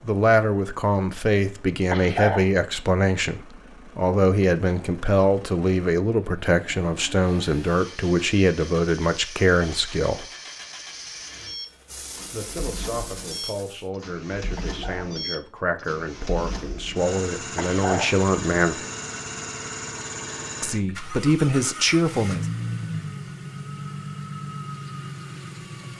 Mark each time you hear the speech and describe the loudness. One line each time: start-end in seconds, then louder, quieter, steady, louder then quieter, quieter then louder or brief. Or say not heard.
0.0-10.2 steady
12.3-18.8 louder
20.6-22.4 brief.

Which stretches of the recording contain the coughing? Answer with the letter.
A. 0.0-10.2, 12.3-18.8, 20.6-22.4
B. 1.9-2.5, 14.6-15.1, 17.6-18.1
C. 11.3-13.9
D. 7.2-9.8
B.